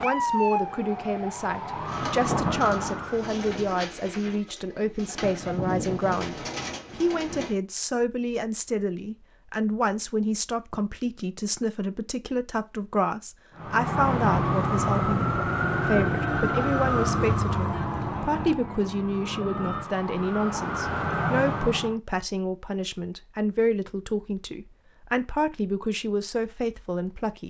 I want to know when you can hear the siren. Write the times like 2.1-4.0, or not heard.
0.0-3.4, 13.6-21.9.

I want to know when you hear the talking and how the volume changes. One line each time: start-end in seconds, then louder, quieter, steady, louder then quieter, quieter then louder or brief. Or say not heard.
0.0-27.4 steady.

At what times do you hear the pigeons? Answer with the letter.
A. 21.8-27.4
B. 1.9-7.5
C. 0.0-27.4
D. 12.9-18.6
B.